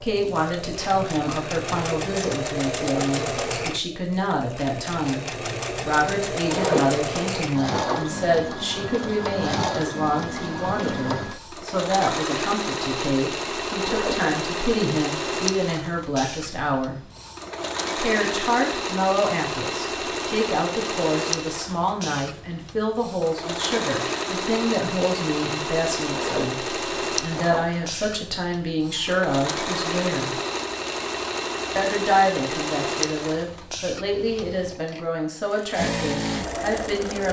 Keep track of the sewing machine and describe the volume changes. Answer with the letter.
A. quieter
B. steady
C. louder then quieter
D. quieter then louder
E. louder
B.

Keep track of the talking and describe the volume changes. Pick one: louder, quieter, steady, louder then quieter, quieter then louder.
steady.